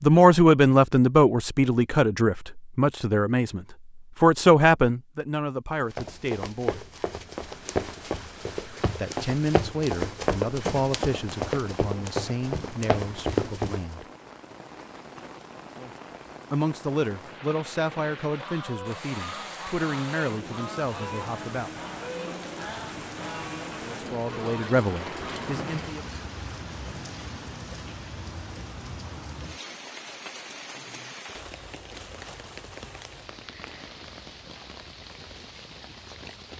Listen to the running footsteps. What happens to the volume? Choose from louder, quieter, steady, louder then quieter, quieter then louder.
louder.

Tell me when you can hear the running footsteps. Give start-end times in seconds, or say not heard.
5.9-14.1.